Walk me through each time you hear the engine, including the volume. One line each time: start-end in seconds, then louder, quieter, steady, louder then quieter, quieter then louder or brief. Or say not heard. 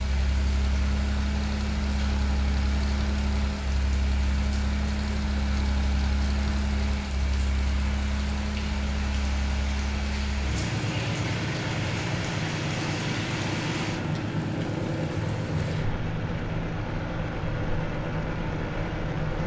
0.0-19.4 steady.